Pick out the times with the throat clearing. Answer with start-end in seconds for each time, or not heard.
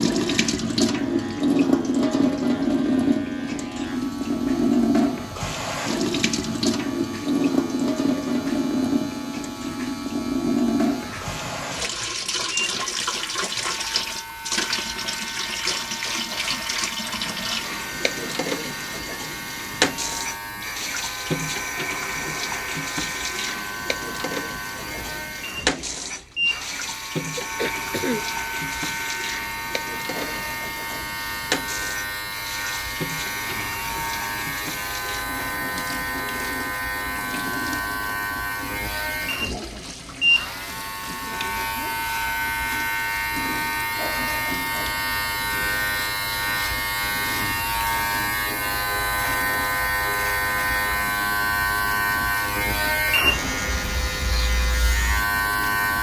27.4-28.4.